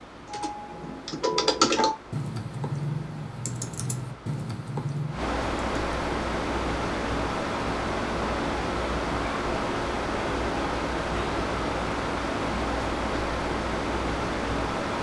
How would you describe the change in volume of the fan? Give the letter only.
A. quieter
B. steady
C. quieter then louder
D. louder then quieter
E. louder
E.